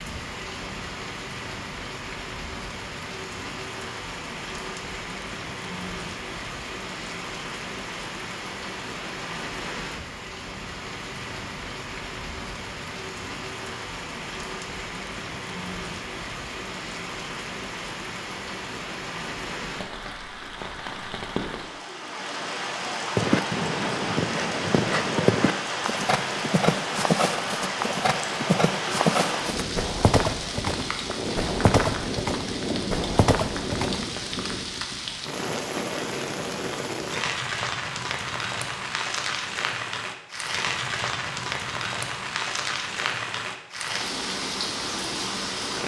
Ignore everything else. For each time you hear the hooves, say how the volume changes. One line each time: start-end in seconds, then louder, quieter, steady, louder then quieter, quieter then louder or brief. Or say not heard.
23.1-34.0 steady.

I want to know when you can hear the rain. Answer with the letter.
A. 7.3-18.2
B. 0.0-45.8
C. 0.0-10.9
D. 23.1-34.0
B.